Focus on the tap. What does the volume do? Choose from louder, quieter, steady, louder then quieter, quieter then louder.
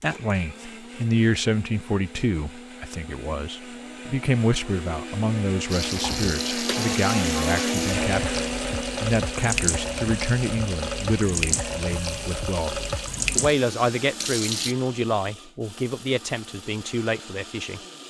steady.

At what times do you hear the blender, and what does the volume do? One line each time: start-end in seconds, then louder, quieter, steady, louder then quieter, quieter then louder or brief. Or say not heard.
0.0-18.0 louder then quieter.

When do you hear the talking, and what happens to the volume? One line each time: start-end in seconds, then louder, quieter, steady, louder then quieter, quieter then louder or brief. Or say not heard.
0.0-18.0 steady.